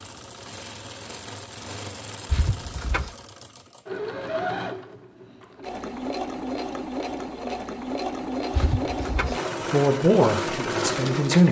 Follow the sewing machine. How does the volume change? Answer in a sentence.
The volume of the sewing machine goes up.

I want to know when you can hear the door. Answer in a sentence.
You can hear the door from 2.2 to 3.1 s and from 8.5 to 9.4 s.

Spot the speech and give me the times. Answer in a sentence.
The speech can be heard from 9.6 to 11.4 s.